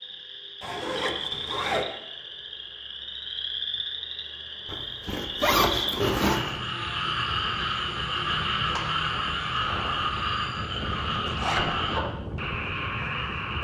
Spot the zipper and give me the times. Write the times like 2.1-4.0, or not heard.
0.6-1.9, 4.7-6.6, 11.2-11.7.